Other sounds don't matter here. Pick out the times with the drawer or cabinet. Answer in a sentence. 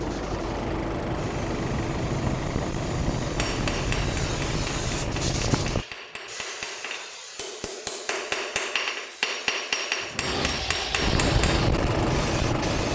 You can hear the drawer or cabinet from 10.0 to 10.7 s.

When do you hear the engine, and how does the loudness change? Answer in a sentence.
You can hear the engine from 0.0 to 5.8 s, at a steady volume; and briefly from 11.0 to 12.8 s.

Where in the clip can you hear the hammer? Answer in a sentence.
The hammer can be heard from 3.4 to 11.6 s.